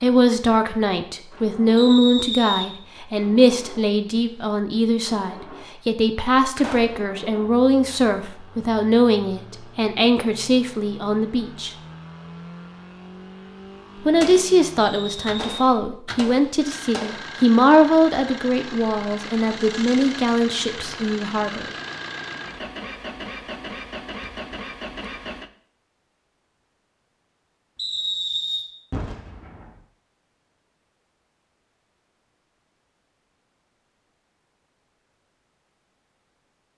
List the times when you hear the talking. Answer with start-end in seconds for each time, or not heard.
0.0-11.7, 13.9-21.7.